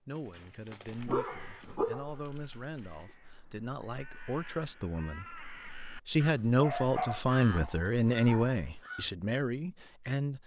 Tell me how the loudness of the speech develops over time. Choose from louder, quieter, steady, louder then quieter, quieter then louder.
louder then quieter.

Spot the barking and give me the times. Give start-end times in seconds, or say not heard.
0.3-2.1, 6.6-8.6.